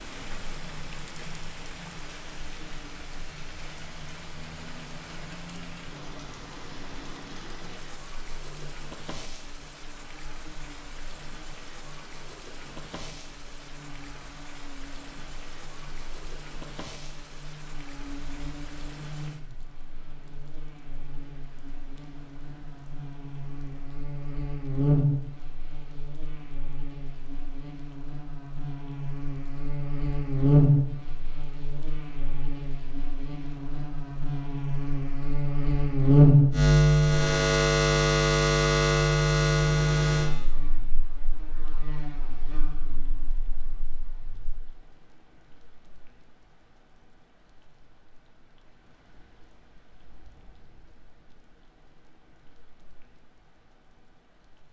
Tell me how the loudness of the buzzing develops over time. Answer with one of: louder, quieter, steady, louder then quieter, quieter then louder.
louder.